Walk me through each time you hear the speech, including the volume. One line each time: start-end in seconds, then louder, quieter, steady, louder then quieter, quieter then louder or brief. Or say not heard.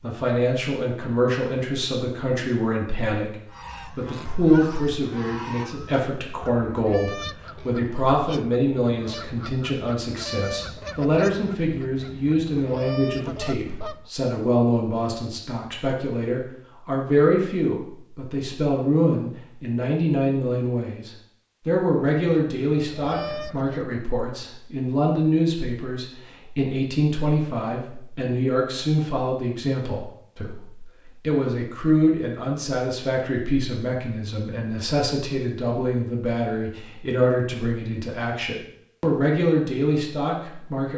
0.0-40.9 steady.